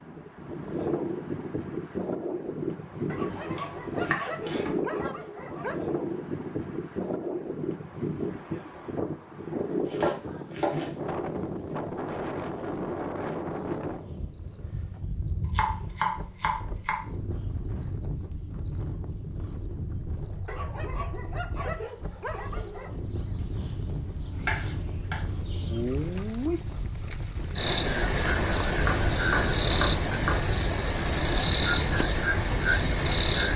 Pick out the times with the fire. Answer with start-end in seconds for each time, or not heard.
not heard.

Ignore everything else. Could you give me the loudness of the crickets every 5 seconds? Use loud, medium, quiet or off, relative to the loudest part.
off, off, quiet, quiet, medium, loud, loud.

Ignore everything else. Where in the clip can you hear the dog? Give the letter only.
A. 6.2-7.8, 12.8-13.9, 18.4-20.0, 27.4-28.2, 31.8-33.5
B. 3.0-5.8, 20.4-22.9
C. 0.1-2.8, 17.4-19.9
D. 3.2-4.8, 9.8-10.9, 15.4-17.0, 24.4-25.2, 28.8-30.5
B.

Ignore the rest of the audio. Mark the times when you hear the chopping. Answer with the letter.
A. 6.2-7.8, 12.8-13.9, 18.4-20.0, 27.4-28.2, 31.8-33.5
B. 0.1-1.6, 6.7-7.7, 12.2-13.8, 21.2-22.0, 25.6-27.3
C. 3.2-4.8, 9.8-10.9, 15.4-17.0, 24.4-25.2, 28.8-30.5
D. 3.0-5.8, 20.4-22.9
C.